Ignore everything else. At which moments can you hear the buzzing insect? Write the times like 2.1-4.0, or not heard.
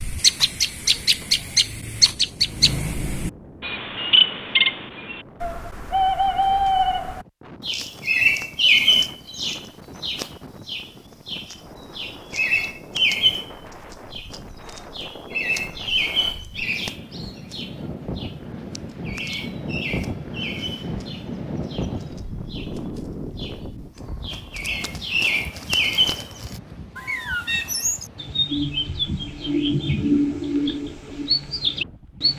not heard.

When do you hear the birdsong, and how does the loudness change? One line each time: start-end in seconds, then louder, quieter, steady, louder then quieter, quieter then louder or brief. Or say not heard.
0.0-32.3 quieter then louder.